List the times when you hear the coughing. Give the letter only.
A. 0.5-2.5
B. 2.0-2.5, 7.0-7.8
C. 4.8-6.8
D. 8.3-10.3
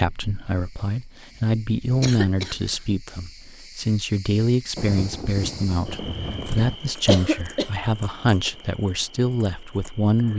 B.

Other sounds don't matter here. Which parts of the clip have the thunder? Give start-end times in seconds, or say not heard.
4.8-6.8.